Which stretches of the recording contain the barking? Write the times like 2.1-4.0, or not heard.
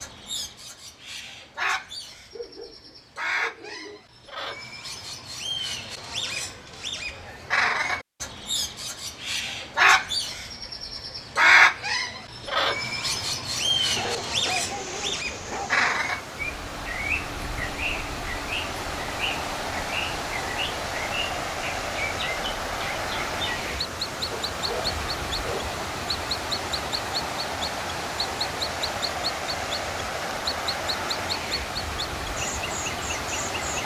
2.3-4.0, 13.9-15.8, 24.3-25.8.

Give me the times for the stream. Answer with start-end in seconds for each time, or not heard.
13.6-33.8.